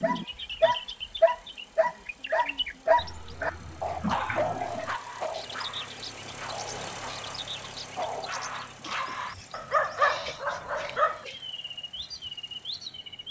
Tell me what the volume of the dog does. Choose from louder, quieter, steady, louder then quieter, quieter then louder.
quieter then louder.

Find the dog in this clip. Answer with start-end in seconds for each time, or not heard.
0.0-11.2.